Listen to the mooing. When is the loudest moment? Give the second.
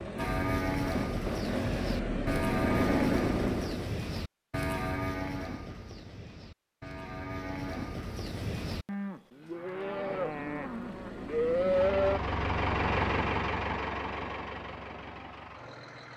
12 s.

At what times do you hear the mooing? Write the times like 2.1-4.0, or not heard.
0.1-12.2.